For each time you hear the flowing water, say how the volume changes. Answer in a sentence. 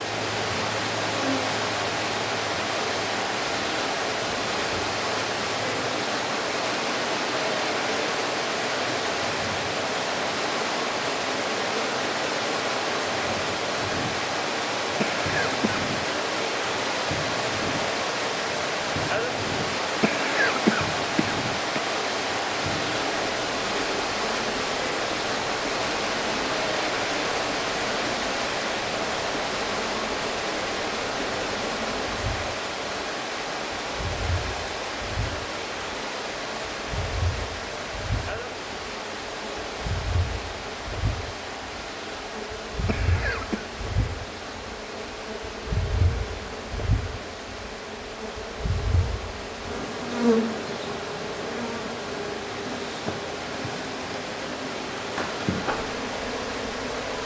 The flowing water can be heard from 0.0 to 57.2 s, getting quieter.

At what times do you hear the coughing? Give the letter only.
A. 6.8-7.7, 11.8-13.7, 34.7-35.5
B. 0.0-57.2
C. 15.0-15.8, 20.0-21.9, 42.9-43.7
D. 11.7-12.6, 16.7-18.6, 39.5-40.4
C.